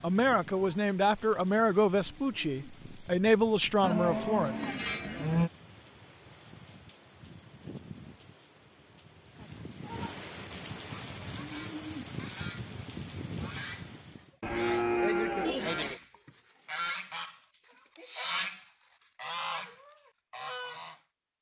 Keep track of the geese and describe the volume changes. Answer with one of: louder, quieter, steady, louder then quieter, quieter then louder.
louder.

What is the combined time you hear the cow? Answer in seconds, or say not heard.
3 s.